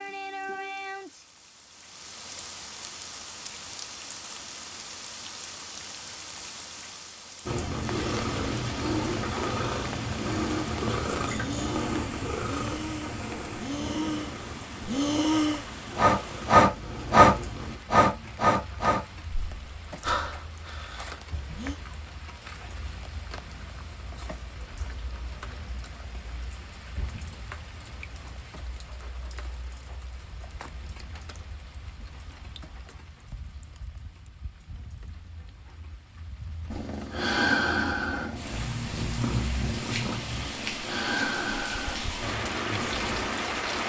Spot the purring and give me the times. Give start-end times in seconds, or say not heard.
7.5-17.8, 36.7-43.8.